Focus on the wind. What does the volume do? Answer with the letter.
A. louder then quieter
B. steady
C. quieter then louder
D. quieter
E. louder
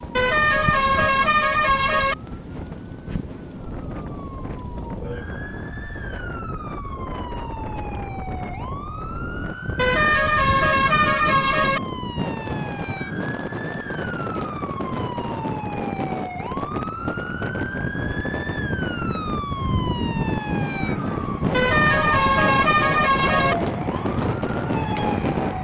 E.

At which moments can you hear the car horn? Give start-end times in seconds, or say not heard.
0.1-2.1, 9.8-11.8, 21.5-23.6.